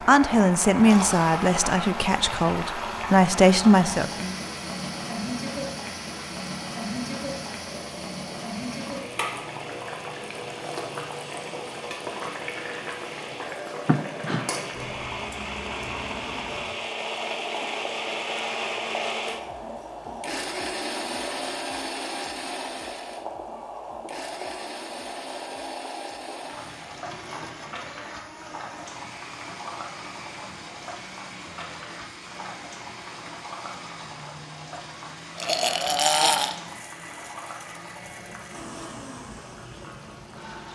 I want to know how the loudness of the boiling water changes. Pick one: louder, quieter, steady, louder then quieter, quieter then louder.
quieter.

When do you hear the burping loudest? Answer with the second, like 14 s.
36 s.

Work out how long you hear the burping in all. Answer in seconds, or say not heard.
2 s.